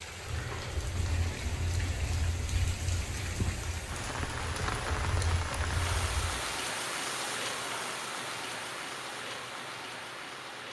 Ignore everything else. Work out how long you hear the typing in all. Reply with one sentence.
You can hear the typing for 6 seconds altogether.